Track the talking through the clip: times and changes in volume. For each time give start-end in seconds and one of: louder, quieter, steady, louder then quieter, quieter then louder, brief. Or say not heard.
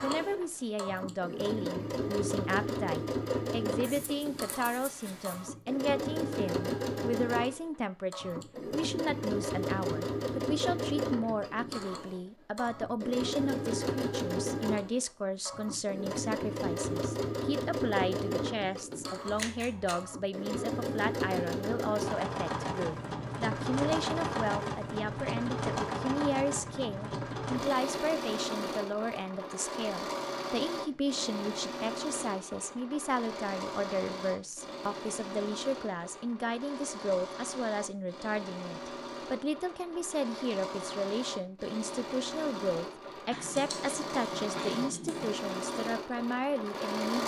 0.0-47.2 steady.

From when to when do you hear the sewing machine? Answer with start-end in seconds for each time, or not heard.
0.0-47.2.